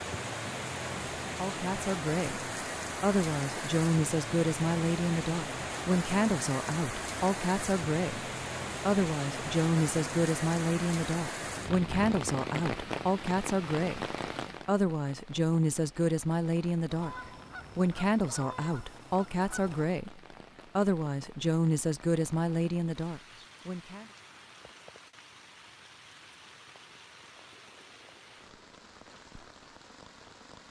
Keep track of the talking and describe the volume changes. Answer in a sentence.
The loudness of the talking stays about the same.